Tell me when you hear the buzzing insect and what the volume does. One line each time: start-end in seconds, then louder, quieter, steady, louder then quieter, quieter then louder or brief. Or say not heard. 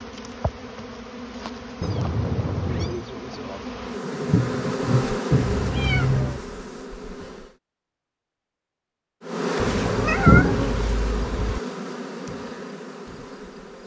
0.0-7.5 louder then quieter
9.2-13.8 quieter.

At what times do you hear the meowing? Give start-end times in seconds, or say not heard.
1.8-3.0, 5.3-6.5, 9.6-11.6.